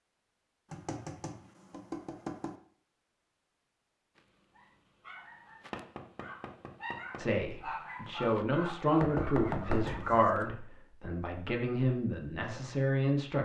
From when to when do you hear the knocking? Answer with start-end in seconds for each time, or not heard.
0.7-2.5, 5.7-7.2, 9.0-10.5.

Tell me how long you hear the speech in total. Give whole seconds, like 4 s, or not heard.
6 s.